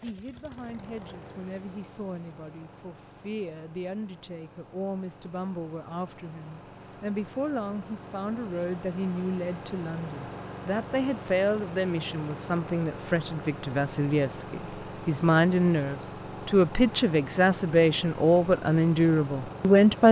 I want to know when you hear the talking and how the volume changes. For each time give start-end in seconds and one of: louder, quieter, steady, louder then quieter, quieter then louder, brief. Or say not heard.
0.0-20.0 louder.